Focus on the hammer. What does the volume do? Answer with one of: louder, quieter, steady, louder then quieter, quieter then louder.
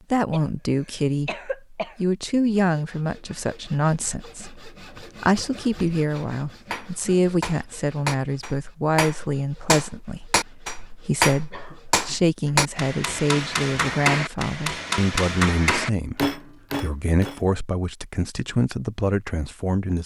louder.